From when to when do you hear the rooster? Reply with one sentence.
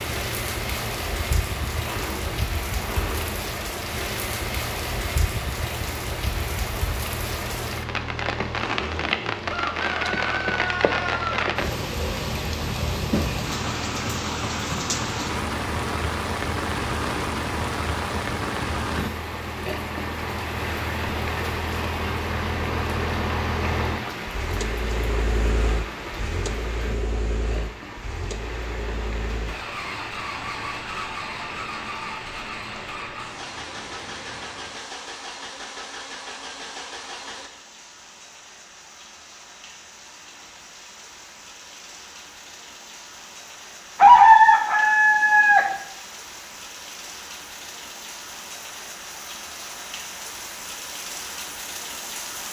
You can hear the rooster from 9.5 to 11.5 s and from 44.0 to 45.6 s.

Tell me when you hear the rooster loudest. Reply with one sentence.
The volume of the rooster peaks at 44 seconds.